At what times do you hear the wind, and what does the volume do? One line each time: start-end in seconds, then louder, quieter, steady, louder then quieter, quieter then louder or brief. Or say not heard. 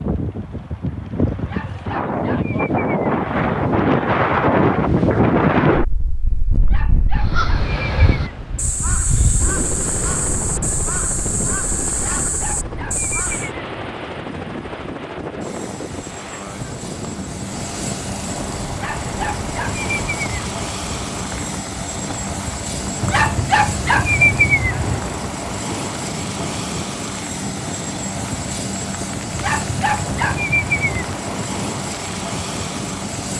0.0-33.3 quieter.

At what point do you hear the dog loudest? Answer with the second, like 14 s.
24 s.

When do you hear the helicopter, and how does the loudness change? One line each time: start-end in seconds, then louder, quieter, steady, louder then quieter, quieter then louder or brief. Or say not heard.
9.3-33.3 louder.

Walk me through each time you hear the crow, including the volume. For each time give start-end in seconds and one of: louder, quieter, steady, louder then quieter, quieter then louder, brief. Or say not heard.
7.1-13.5 steady.